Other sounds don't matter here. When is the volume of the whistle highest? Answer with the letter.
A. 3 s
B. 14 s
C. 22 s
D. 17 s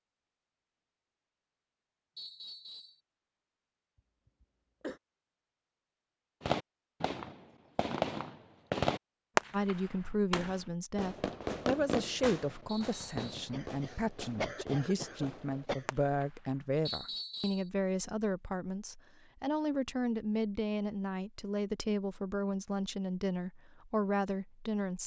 D.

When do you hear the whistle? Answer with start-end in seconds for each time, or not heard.
2.1-3.0, 12.7-13.3, 16.9-17.7.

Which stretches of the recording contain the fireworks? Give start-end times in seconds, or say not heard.
6.4-16.6.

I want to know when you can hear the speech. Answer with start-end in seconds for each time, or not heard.
9.5-25.0.